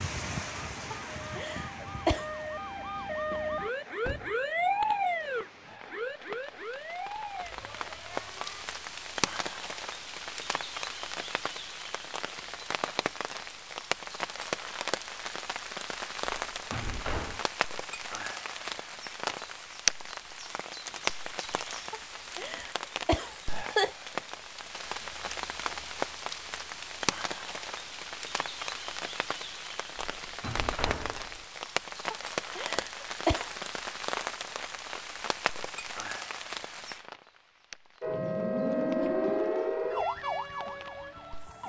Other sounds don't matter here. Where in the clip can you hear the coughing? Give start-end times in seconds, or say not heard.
0.9-2.2, 21.9-23.9, 32.1-33.6.